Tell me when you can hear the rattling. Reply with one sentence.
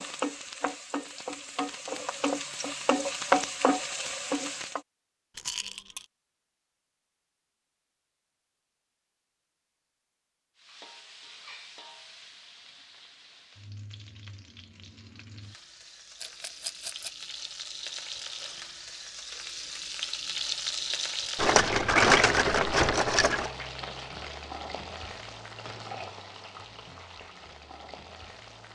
The rattling can be heard from 5.3 to 6.0 s, from 16.2 to 17.2 s and from 21.4 to 23.5 s.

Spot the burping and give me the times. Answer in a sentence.
The burping can't be heard in this clip.